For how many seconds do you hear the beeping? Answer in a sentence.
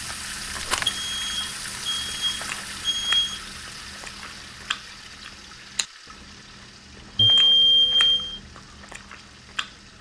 You can hear the beeping for 4 seconds altogether.